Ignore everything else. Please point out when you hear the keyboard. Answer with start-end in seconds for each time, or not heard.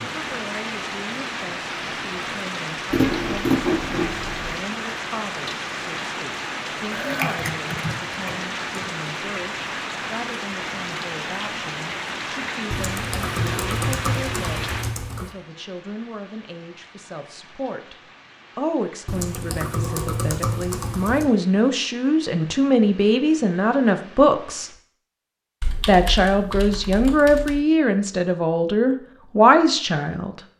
2.9-4.6, 6.9-8.8, 12.7-15.3, 19.1-21.3, 25.6-27.6.